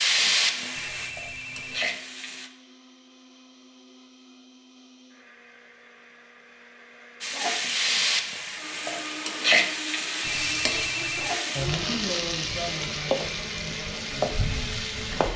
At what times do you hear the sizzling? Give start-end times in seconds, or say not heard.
0.0-2.5, 7.2-15.3.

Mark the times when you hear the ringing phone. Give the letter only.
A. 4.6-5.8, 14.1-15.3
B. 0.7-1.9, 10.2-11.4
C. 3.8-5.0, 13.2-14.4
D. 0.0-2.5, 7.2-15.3
B.